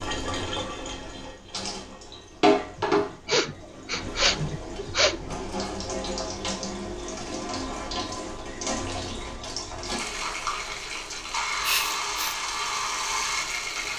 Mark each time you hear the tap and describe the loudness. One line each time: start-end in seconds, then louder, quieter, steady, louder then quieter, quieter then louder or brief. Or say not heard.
0.0-13.9 quieter then louder.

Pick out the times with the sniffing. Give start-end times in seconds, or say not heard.
2.8-5.4, 11.5-12.3.